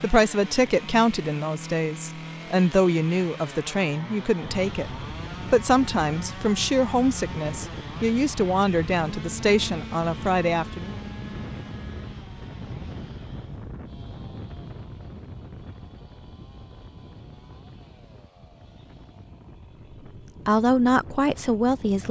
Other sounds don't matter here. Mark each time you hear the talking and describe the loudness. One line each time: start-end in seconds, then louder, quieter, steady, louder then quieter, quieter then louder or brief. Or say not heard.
0.0-10.9 steady
20.4-22.0 brief.